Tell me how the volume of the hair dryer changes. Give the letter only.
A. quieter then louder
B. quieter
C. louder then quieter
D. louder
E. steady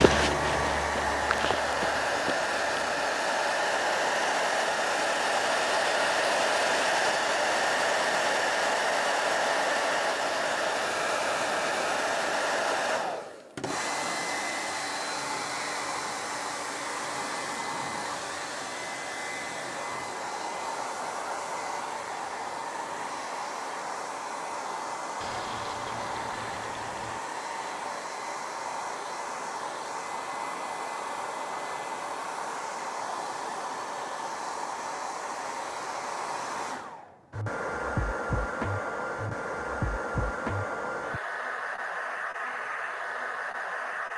B.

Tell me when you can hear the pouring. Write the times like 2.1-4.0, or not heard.
25.2-27.2.